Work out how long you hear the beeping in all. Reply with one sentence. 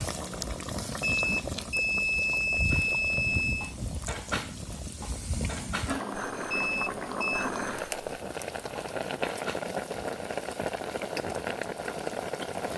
You can hear the beeping for 4 seconds altogether.